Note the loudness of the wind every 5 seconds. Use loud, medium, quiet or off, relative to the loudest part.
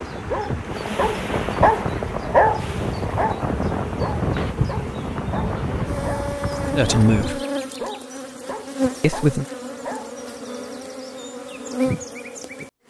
loud, loud, off.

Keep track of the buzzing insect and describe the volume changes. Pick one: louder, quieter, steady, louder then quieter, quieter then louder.
steady.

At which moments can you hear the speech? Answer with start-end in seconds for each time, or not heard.
6.8-7.4, 9.0-9.4.